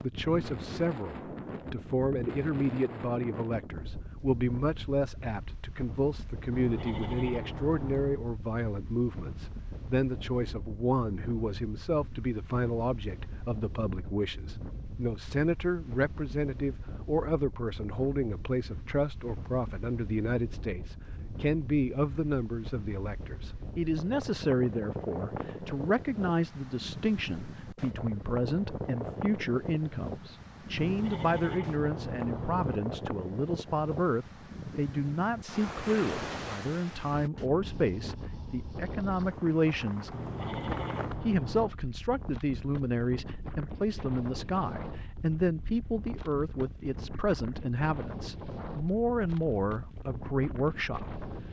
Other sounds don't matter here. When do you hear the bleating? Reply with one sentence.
You can hear the bleating from 6.5 to 8.2 s, from 30.8 to 32.8 s and from 40.1 to 41.8 s.